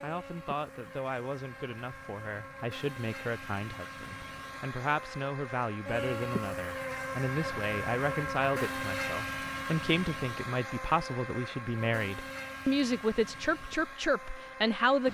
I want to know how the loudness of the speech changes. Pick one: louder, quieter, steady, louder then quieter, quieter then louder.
louder.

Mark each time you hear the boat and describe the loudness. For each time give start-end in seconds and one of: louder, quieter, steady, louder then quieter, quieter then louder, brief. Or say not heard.
0.0-15.0 louder then quieter.